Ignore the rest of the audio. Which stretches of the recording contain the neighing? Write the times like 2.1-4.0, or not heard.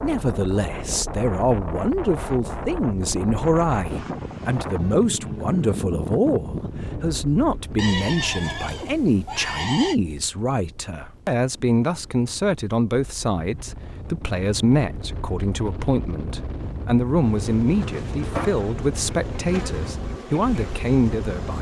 7.8-9.9.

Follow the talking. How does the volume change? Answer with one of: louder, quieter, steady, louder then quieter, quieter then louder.
steady.